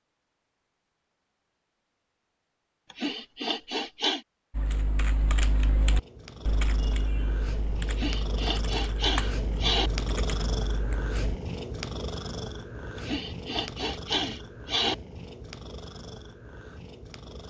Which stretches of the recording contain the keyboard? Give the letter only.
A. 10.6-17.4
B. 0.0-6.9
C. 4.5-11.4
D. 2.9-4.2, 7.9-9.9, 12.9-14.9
C.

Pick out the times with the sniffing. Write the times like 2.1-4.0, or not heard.
2.9-4.2, 7.9-9.9, 12.9-14.9.